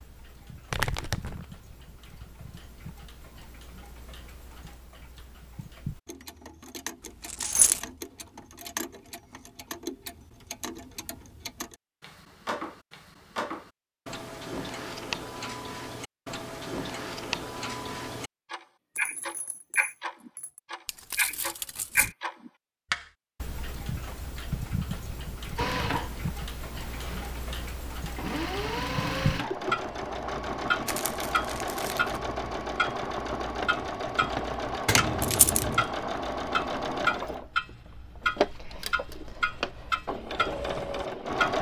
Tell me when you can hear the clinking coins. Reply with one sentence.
You can hear the clinking coins from 7.2 to 7.8 s, from 18.9 to 20.6 s and from 34.9 to 35.9 s.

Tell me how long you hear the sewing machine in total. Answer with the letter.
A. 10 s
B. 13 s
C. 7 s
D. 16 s
D.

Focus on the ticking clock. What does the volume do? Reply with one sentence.
The volume of the ticking clock goes up.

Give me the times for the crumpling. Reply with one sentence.
The crumpling can be heard from 0.7 to 1.4 s, from 20.9 to 22.1 s and from 30.9 to 32.2 s.